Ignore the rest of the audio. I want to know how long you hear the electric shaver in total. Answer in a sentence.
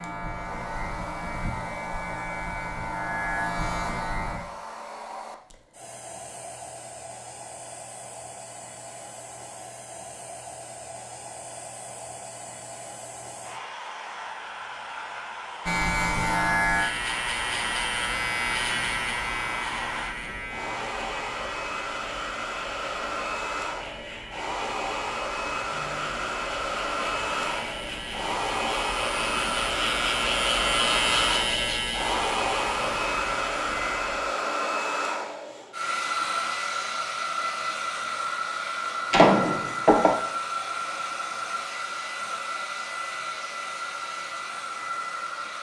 You can hear the electric shaver for 23 seconds altogether.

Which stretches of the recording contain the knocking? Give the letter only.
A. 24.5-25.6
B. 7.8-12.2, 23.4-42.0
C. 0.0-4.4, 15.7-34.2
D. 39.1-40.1
D.